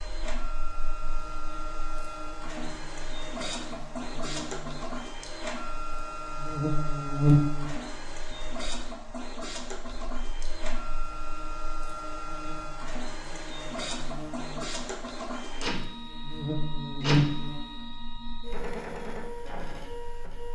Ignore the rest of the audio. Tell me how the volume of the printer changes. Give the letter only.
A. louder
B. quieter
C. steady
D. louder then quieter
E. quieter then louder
C.